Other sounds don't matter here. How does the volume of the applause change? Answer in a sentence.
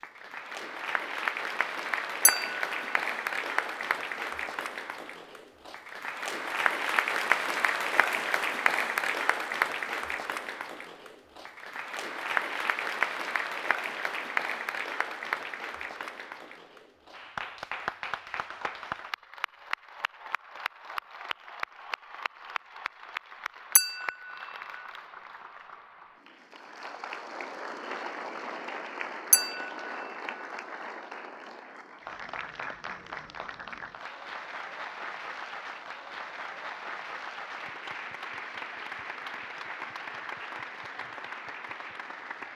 The loudness of the applause goes down.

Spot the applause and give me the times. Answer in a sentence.
The applause can be heard from 0.0 to 42.5 s.